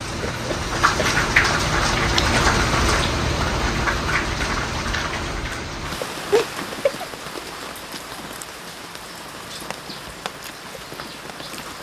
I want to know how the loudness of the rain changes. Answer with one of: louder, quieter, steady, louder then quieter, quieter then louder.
quieter.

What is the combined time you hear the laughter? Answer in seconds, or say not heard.
2 s.